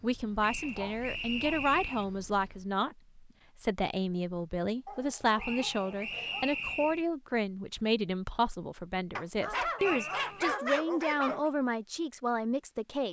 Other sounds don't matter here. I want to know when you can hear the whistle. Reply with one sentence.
The whistle can be heard from 0.4 to 2.0 s, from 5.3 to 7.0 s and from 9.8 to 10.5 s.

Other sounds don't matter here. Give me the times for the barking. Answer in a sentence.
You can hear the barking from 0.6 to 1.6 s, from 4.8 to 6.8 s and from 9.2 to 11.5 s.